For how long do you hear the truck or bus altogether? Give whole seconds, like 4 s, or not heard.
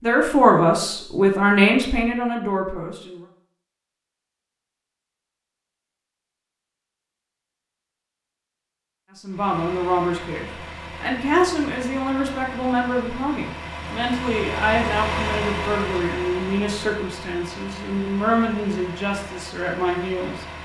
11 s.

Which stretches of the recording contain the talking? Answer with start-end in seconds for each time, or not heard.
0.0-3.2, 9.2-20.4.